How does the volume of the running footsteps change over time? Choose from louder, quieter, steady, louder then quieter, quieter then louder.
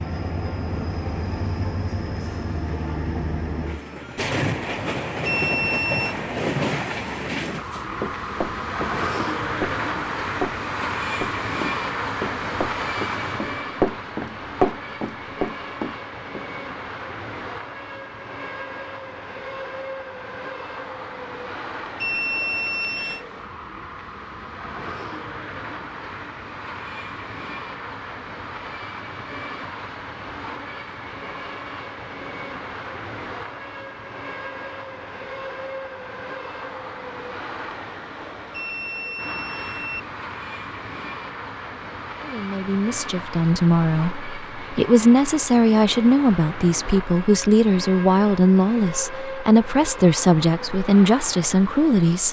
louder.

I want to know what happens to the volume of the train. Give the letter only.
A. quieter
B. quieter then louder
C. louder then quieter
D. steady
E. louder
A.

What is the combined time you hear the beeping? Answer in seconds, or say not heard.
4 s.